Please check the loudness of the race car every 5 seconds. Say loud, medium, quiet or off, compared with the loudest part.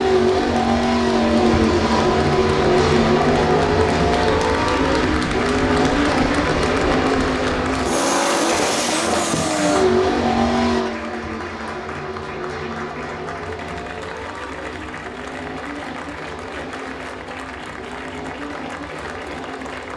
loud, loud, medium, quiet.